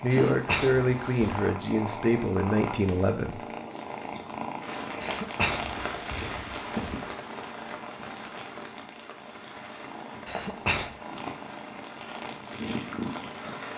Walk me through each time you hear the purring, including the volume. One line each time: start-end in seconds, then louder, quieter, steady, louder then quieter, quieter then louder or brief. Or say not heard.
0.0-13.7 quieter then louder.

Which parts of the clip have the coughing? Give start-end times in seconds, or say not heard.
0.1-1.5, 5.0-7.0, 10.2-10.9.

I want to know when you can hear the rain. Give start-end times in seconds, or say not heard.
4.5-13.7.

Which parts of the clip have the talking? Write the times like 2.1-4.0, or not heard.
0.0-3.4.